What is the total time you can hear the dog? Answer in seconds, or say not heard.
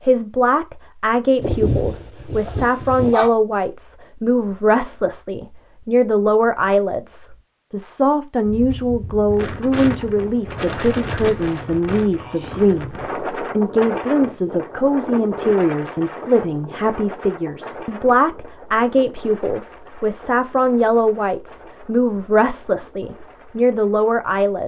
2 s.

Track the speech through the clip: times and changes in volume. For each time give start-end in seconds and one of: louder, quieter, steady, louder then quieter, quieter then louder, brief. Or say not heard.
0.0-24.6 steady.